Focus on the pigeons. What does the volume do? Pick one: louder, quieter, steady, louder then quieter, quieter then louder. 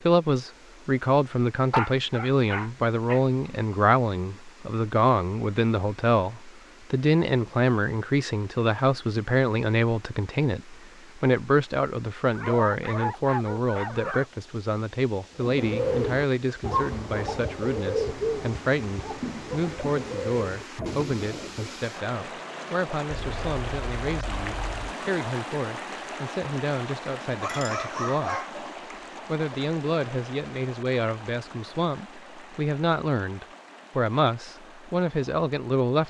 quieter.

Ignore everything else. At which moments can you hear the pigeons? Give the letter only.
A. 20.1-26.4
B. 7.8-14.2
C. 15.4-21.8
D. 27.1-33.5
C.